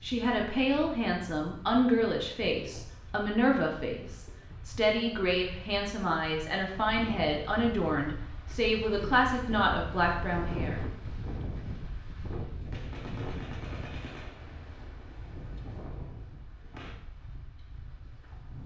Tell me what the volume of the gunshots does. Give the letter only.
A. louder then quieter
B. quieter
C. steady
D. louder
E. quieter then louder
B.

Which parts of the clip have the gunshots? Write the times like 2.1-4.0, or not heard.
12.7-16.9.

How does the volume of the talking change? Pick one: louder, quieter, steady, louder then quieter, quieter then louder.
steady.